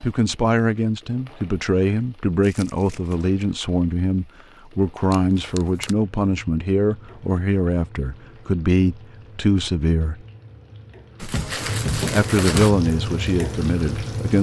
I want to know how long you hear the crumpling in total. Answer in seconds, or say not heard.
3 s.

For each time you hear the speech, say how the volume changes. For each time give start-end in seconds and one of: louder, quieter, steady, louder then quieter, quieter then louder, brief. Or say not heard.
0.0-10.2 steady
12.1-14.3 brief.